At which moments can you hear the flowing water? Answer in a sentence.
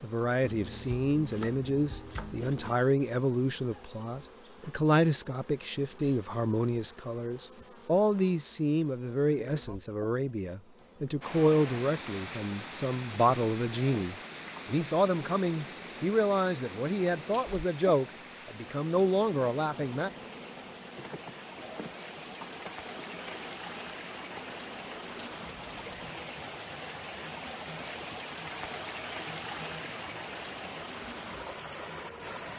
The flowing water can be heard from 11.2 to 32.5 s.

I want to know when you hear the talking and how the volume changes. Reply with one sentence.
You can hear the talking from 0.0 to 20.1 s, at a steady volume.